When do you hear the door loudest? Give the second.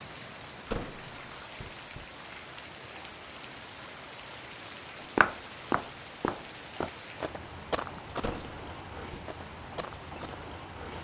1 s.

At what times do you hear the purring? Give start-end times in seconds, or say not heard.
not heard.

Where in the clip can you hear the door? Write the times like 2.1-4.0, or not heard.
0.7-2.0, 8.2-9.2.